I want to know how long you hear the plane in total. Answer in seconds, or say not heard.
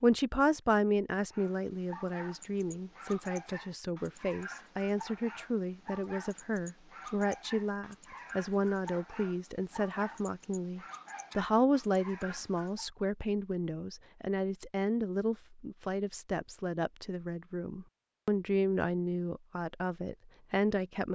not heard.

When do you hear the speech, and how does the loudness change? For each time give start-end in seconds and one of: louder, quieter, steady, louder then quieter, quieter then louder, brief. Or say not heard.
0.0-21.1 steady.